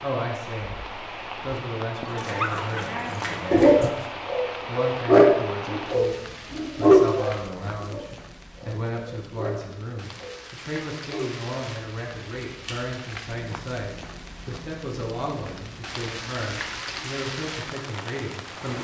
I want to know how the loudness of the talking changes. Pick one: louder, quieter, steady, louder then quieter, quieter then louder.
steady.